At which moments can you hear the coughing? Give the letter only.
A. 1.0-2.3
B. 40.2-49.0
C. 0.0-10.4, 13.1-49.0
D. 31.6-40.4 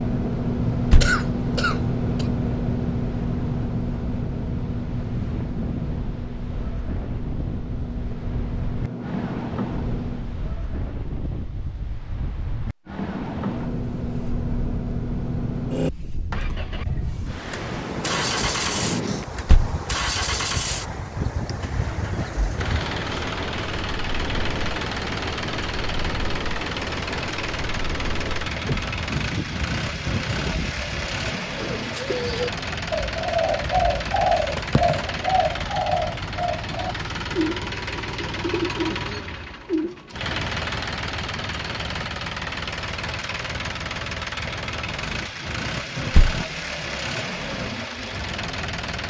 A.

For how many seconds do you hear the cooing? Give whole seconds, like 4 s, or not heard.
9 s.